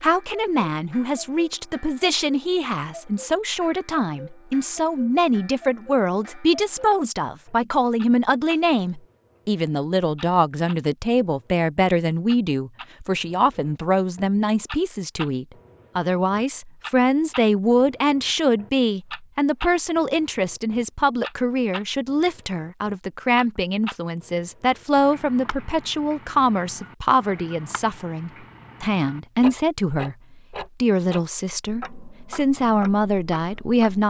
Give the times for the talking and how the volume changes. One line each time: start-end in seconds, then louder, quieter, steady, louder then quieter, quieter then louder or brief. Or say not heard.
0.0-34.0 steady.